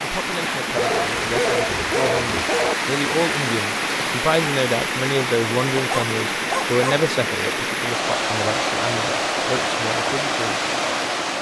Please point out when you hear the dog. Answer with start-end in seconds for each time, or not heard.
0.8-2.8, 5.8-7.0.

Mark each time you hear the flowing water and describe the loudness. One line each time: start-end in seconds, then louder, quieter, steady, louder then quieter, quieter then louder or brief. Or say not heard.
0.0-11.3 steady.